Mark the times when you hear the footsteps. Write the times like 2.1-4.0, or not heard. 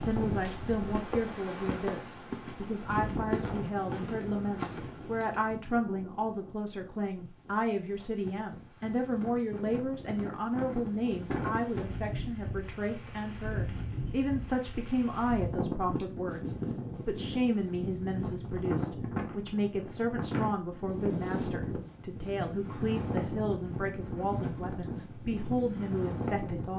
0.0-5.5.